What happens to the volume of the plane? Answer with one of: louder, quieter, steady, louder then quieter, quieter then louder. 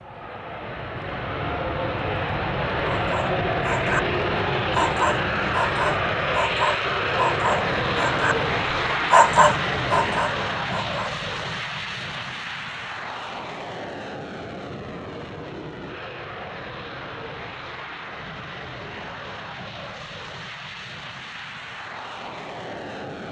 quieter.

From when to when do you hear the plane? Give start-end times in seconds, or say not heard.
0.0-23.2.